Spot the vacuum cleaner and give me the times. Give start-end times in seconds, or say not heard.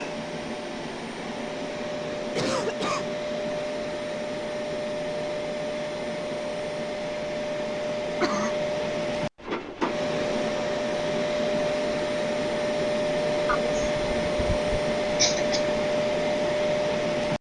0.0-17.3.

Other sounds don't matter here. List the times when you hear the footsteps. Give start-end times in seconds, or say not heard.
not heard.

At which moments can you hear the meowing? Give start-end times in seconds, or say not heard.
not heard.